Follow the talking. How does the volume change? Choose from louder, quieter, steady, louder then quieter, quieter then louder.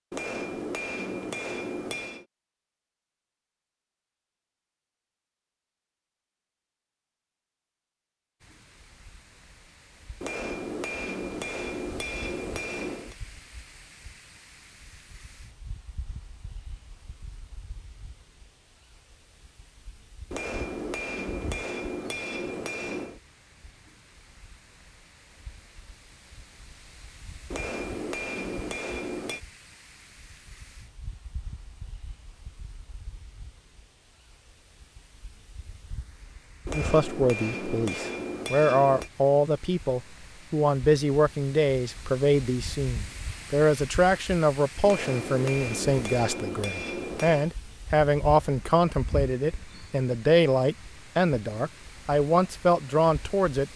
steady.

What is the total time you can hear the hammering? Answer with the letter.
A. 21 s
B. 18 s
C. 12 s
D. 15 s
D.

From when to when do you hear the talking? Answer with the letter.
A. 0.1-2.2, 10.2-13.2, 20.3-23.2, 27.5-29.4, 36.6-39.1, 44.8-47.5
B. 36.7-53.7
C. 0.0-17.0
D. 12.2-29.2
B.